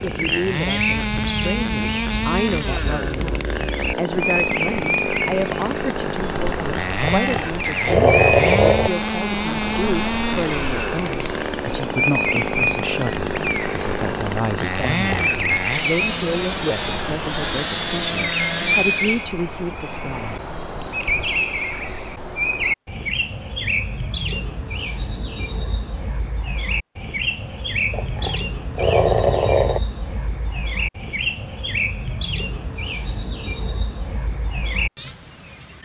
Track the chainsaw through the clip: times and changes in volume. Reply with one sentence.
The chainsaw can be heard from 0.0 to 19.3 s, at a steady volume.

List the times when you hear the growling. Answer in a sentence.
You can hear the growling from 7.0 to 8.9 s, from 14.9 to 15.3 s and from 27.9 to 29.8 s.